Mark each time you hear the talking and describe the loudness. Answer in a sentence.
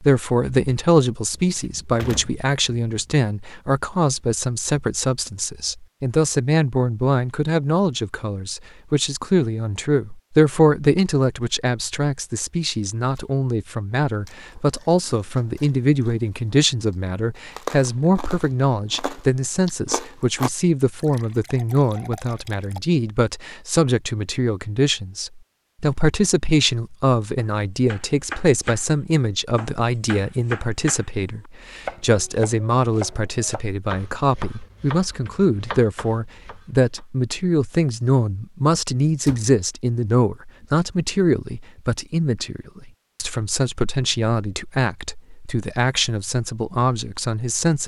The talking can be heard from 0.0 to 47.8 s, at a steady volume.